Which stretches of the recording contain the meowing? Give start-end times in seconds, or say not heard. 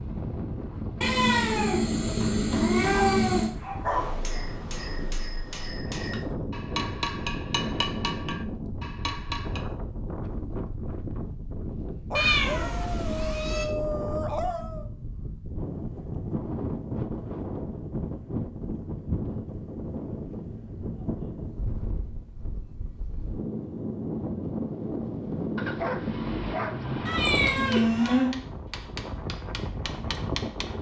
1.0-3.5, 12.2-13.7, 27.1-28.3.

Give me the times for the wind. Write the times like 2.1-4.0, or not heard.
0.0-30.7.